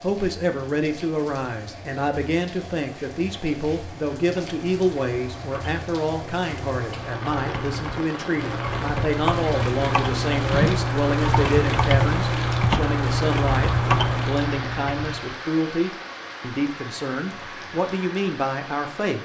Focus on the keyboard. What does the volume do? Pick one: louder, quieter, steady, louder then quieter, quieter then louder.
louder.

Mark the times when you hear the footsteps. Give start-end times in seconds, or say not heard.
not heard.